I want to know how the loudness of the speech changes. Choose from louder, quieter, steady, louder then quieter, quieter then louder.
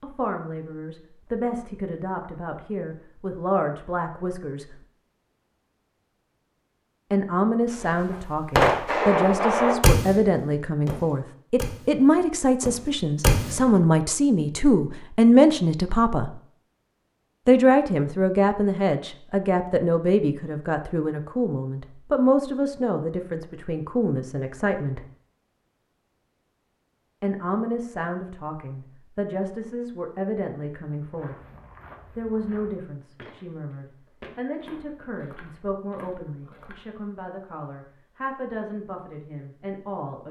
louder then quieter.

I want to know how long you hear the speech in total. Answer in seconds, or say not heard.
34 s.